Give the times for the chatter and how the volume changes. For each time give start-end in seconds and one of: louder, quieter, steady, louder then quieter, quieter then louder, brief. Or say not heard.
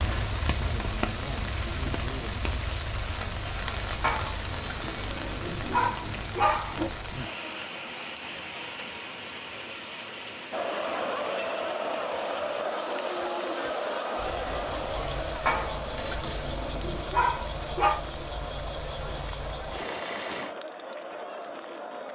10.5-22.0 quieter.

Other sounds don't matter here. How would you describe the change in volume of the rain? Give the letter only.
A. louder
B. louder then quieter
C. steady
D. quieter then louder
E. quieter
E.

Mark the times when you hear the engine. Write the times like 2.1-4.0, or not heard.
14.2-20.6.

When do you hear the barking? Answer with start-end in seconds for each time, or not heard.
4.0-6.9, 15.4-17.9.